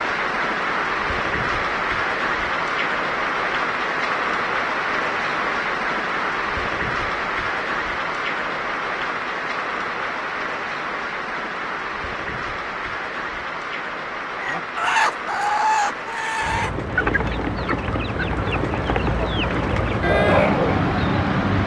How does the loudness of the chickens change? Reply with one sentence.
The volume of the chickens goes down, then up.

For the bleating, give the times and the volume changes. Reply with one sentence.
The bleating can't be heard in this clip.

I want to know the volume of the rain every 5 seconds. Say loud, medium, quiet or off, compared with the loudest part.
loud, loud, medium, medium, loud.